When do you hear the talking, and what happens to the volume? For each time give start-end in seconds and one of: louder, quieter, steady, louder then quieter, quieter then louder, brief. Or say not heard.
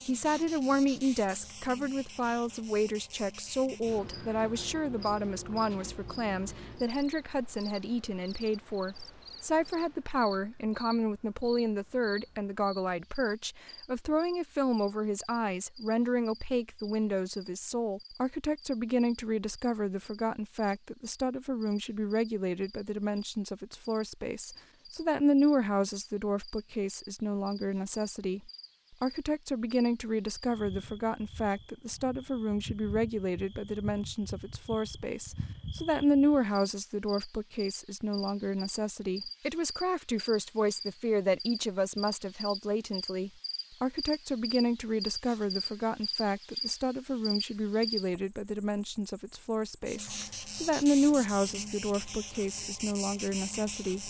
0.1-54.0 steady.